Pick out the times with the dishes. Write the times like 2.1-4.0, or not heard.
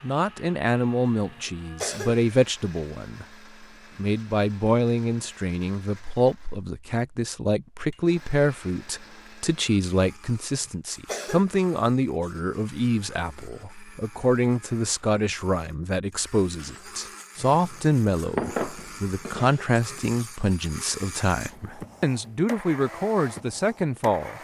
17.4-20.1.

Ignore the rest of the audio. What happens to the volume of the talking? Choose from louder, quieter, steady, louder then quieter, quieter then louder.
steady.